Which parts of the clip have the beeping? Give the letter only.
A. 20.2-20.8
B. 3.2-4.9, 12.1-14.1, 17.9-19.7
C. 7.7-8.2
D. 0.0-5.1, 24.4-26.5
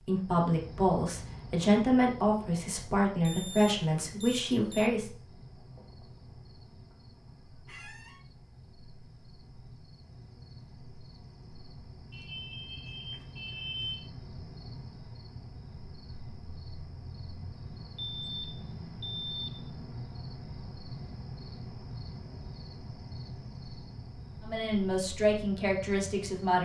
B.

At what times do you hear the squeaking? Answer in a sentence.
You can hear the squeaking from 7.7 to 8.2 s.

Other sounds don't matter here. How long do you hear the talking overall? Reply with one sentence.
The talking can be heard for 7 seconds in total.